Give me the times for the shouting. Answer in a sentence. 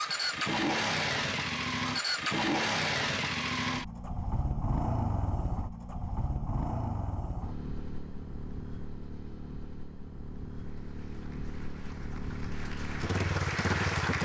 The shouting can't be heard in this clip.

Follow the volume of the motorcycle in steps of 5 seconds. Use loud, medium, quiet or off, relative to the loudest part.
loud, medium, medium.